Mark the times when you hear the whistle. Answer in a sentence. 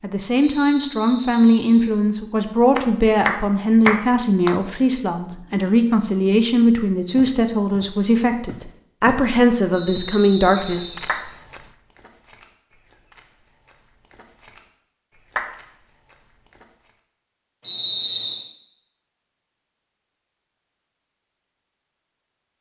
You can hear the whistle from 0.5 to 1.9 s, from 9.7 to 11.2 s and from 17.6 to 18.5 s.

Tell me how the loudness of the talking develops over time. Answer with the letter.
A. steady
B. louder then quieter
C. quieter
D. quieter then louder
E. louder
A.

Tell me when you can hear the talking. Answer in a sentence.
The talking can be heard from 0.0 to 10.9 s.